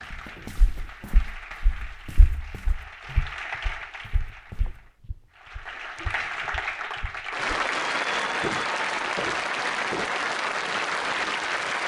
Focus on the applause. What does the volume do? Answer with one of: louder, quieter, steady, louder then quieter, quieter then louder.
louder.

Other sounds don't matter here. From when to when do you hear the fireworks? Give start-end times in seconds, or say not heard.
not heard.